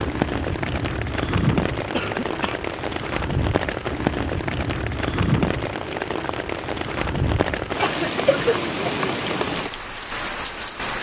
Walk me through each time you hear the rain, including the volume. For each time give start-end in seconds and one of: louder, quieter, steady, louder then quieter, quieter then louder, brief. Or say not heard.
0.0-10.9 steady.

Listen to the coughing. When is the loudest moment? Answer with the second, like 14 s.
8 s.